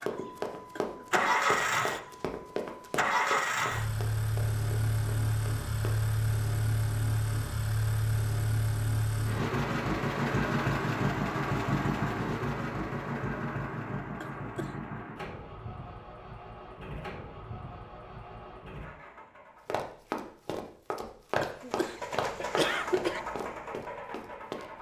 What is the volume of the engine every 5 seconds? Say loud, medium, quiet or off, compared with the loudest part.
loud, loud, loud, quiet, medium.